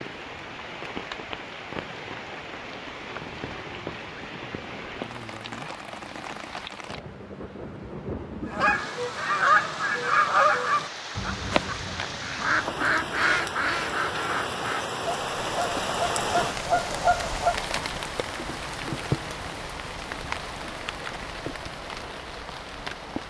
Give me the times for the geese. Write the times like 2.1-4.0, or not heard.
8.5-17.6.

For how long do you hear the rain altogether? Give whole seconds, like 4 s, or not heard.
23 s.